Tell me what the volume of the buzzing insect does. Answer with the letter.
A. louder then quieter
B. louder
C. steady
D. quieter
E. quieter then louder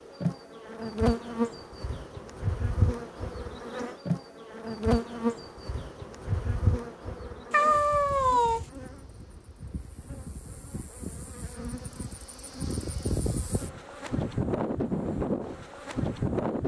E.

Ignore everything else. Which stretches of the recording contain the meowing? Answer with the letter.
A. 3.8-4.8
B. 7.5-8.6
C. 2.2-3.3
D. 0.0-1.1
B.